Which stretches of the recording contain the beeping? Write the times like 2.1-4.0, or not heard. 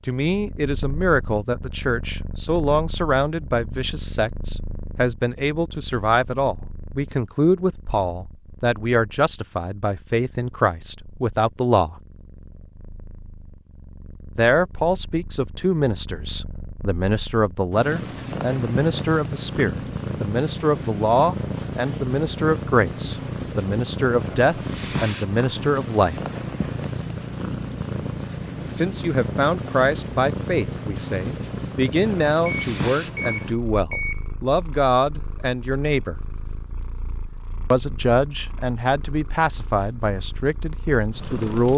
32.5-34.2.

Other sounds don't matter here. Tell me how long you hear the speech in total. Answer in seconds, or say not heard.
35 s.